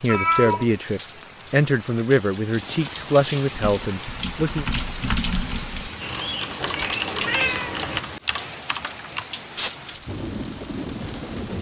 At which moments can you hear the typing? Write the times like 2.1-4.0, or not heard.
3.5-9.2.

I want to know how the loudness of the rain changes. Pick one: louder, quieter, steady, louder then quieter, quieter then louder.
louder.